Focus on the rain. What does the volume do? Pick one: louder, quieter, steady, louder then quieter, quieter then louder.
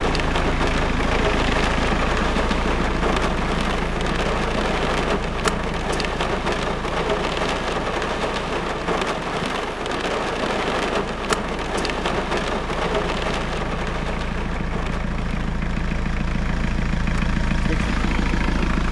quieter.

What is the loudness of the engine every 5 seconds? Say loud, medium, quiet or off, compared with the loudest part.
loud, medium, medium, loud.